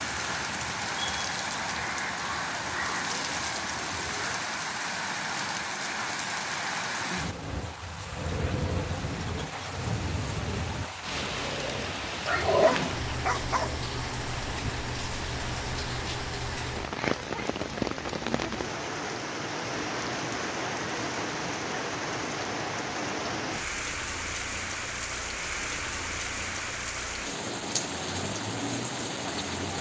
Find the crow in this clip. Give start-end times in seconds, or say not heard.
0.1-4.4.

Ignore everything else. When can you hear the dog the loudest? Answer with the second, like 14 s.
13 s.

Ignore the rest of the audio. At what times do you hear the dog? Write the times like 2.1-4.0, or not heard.
11.2-13.8.